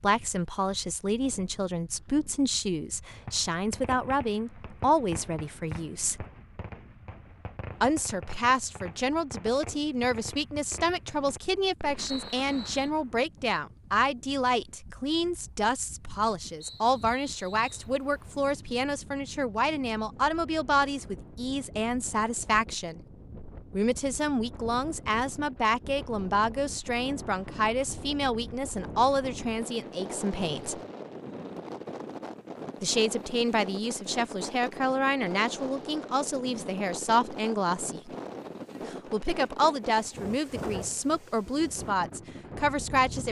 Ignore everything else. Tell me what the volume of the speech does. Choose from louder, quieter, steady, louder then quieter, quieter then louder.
steady.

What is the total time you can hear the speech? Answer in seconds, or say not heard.
38 s.